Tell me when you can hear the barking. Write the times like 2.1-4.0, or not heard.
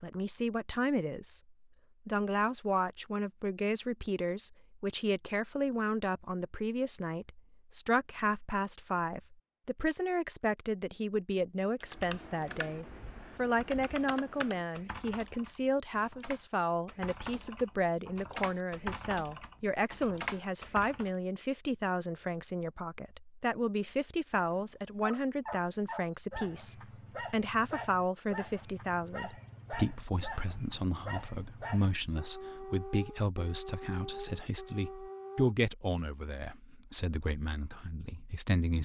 24.4-35.5.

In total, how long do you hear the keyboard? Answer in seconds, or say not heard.
9 s.